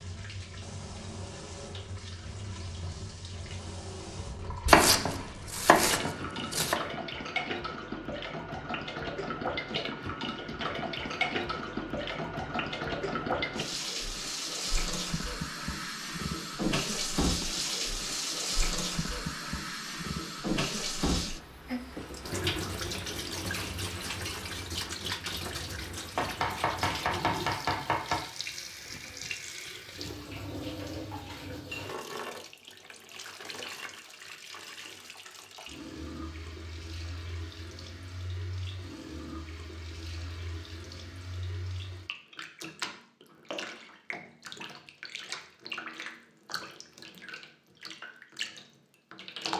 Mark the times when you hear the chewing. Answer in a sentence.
The chewing can't be heard in this clip.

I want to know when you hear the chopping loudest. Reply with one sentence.
The volume of the chopping peaks at 5 seconds.